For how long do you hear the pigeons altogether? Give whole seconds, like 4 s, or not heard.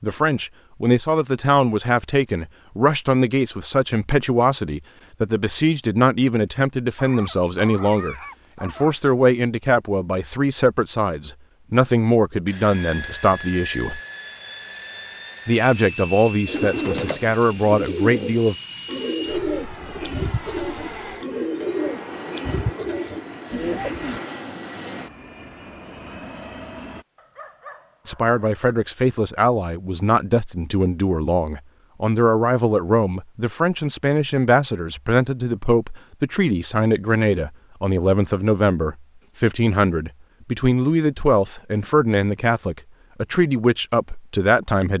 8 s.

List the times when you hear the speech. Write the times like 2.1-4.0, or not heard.
0.0-14.0, 15.4-18.6, 28.1-44.9.